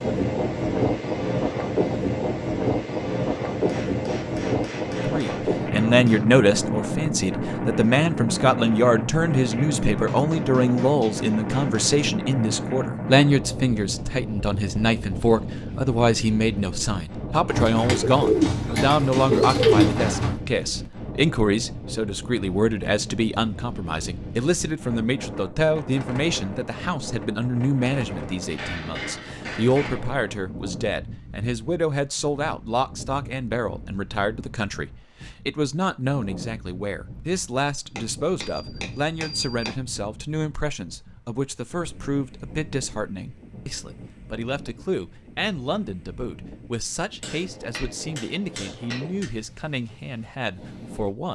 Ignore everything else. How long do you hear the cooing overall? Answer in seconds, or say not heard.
3 s.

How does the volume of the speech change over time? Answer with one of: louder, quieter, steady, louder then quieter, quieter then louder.
quieter.